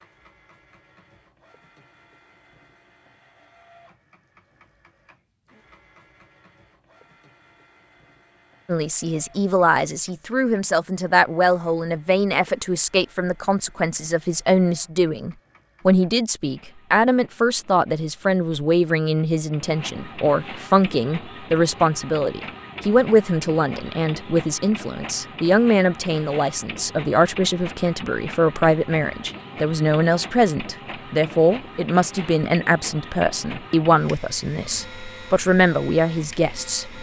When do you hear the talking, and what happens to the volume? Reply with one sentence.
The talking can be heard from 8.7 to 36.9 s, at a steady volume.